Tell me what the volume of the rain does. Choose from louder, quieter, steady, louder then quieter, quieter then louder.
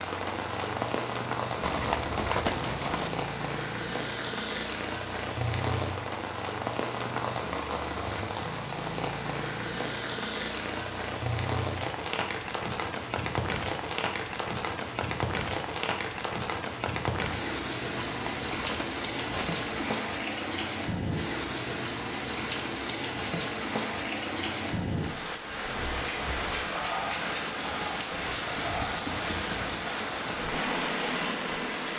steady.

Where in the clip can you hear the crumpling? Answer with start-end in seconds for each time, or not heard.
1.6-3.1, 17.9-20.0.